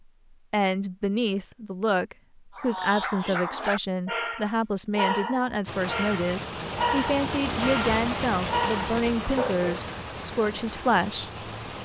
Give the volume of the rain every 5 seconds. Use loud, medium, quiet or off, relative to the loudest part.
off, loud, medium.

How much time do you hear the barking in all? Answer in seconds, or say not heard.
7 s.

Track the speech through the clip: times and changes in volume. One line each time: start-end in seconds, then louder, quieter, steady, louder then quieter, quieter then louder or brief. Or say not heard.
0.5-11.3 steady.